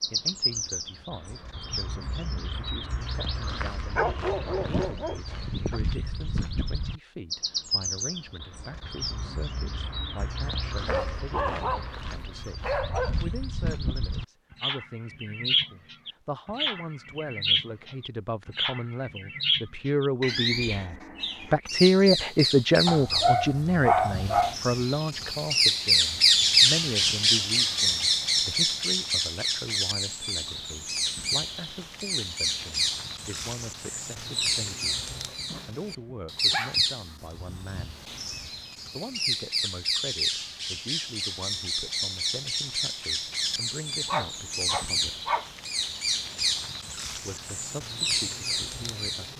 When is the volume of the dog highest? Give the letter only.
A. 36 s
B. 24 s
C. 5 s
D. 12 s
B.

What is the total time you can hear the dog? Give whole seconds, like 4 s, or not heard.
9 s.